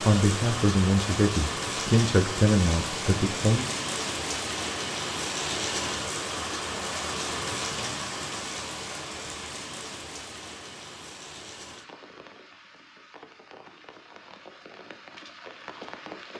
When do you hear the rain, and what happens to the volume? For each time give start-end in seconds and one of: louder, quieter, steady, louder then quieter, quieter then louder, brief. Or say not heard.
0.0-16.3 quieter.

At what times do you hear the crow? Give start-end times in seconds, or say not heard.
not heard.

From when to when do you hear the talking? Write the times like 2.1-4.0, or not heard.
0.0-3.7.